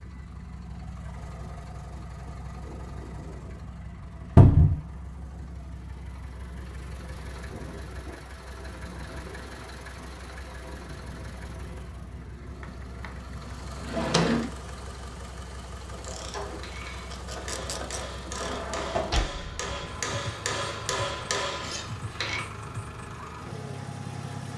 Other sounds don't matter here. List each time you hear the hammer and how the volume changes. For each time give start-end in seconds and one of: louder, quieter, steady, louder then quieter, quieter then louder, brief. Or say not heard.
16.4-22.4 louder.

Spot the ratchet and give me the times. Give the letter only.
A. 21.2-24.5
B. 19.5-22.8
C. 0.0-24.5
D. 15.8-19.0
D.